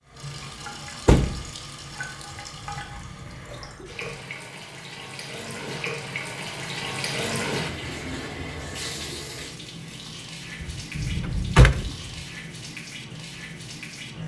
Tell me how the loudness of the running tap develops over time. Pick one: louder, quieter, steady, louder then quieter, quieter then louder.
louder then quieter.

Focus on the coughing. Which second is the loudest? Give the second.
11 s.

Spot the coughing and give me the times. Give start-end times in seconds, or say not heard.
2.5-4.2, 10.9-11.6.